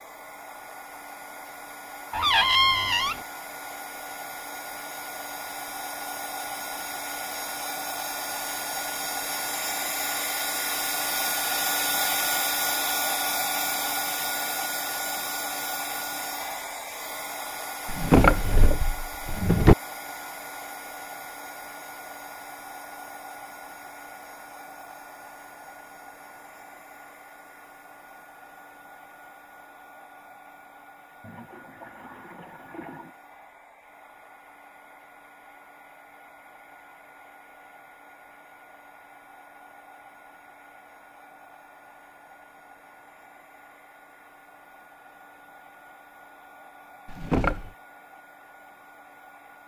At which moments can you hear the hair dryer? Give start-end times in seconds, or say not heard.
0.0-49.6.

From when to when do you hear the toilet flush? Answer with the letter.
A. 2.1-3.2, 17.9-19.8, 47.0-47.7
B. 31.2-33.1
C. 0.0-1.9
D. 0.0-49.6
B.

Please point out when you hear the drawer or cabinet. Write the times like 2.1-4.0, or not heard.
2.1-3.2, 17.9-19.8, 47.0-47.7.